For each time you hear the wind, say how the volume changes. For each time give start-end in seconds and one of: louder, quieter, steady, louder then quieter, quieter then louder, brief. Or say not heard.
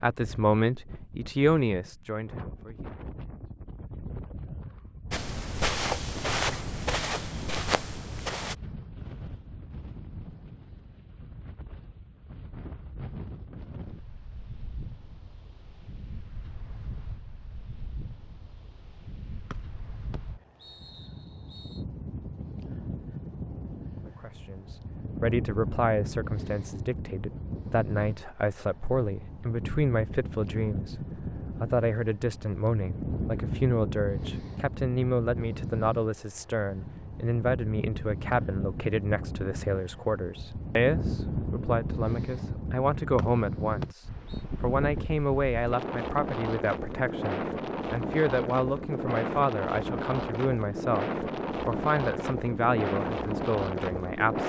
0.0-54.4 louder.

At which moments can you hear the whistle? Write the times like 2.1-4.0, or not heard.
19.5-21.9, 43.1-44.4.